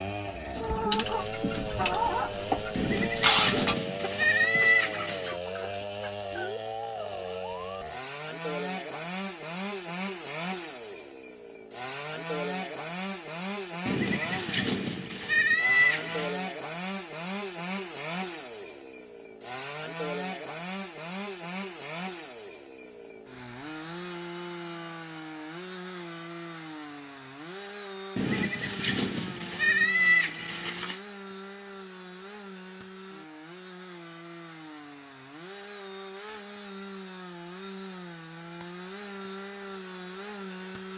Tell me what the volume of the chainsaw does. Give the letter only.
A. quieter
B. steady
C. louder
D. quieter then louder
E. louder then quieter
A.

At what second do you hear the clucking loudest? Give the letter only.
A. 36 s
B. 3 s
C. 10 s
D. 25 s
B.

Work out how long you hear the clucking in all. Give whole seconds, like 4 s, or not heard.
6 s.